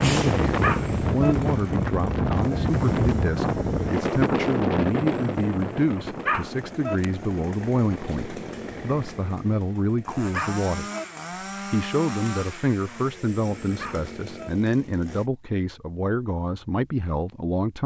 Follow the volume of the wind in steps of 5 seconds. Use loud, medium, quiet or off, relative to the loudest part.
loud, medium, off, off.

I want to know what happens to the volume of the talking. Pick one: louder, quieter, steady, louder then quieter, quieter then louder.
steady.